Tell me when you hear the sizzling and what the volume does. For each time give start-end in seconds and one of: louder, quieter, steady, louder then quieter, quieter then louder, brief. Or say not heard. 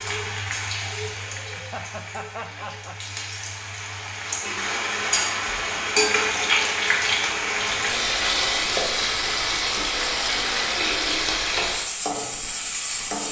0.0-13.2 louder.